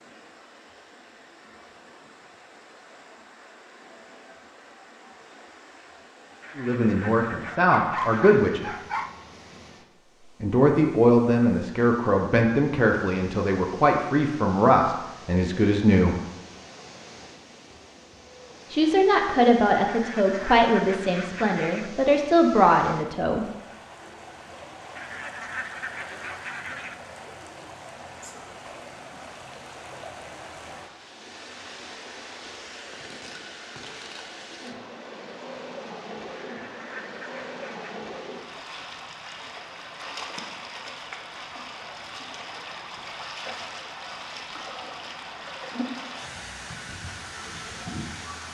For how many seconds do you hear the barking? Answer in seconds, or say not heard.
2 s.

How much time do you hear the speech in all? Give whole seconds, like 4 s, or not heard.
13 s.